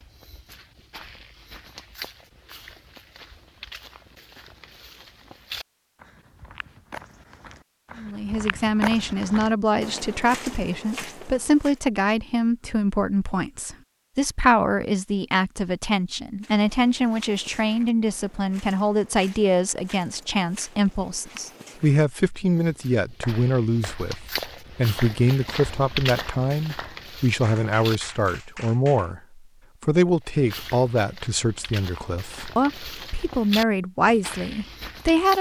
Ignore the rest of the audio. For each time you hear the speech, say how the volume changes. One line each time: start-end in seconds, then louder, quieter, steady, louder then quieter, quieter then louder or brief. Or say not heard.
8.0-35.3 steady.